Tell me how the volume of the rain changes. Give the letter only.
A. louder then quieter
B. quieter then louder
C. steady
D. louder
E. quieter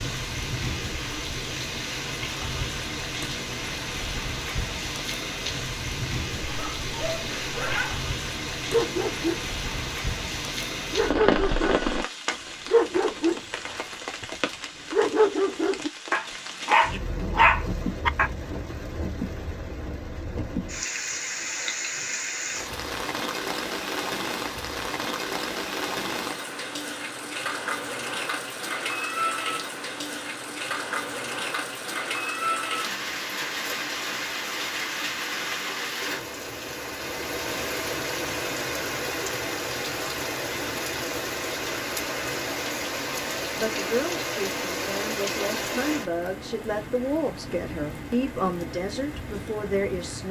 C.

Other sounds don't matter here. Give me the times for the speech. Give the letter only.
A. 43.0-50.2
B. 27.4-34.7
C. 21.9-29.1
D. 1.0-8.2
A.